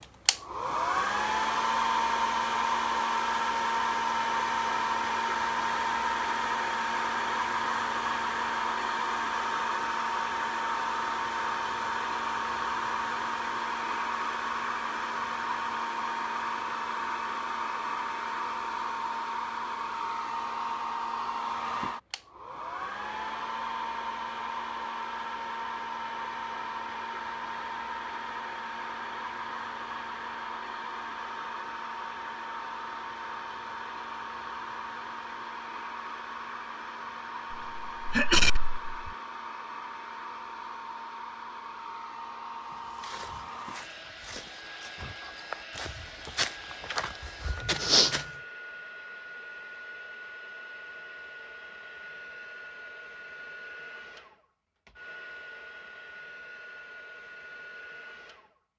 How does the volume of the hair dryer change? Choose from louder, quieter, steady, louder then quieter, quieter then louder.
quieter.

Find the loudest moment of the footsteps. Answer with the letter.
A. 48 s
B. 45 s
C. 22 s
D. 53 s
A.